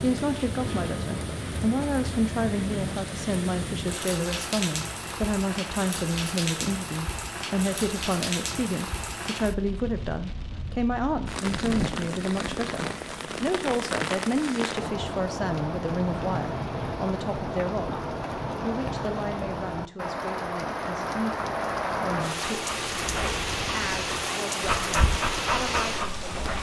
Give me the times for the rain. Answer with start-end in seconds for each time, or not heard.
0.0-26.5.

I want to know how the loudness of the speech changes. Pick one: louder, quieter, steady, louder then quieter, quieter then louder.
quieter.